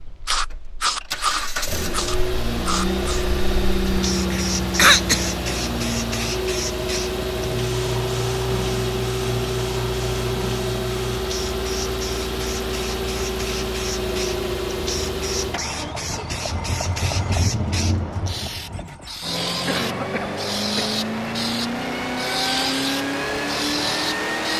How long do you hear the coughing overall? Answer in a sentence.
The coughing can be heard for 2 seconds in total.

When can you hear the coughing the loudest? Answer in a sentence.
The volume of the coughing peaks at 5 seconds.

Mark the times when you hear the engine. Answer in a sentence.
You can hear the engine from 0.0 to 24.5 s.